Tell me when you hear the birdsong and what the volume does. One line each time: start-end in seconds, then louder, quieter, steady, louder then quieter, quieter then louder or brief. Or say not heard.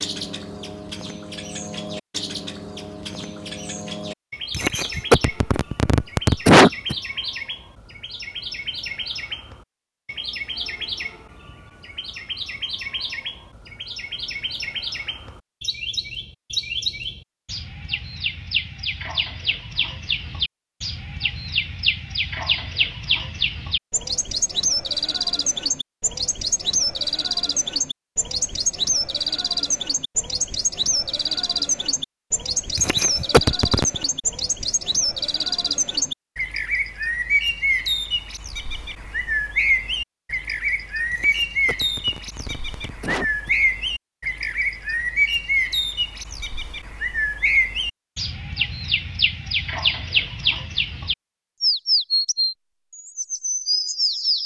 0.0-54.4 louder.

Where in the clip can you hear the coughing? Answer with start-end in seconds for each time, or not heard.
4.5-7.0, 32.8-34.0, 41.1-43.5.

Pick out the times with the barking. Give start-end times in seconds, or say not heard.
not heard.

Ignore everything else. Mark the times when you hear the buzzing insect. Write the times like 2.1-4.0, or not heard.
not heard.